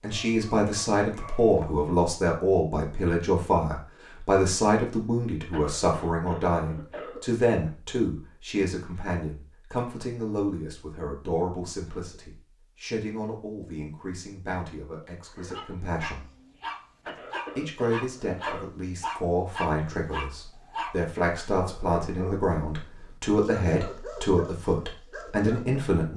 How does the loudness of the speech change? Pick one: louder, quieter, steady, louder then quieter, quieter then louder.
quieter then louder.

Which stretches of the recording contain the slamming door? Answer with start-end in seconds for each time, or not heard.
not heard.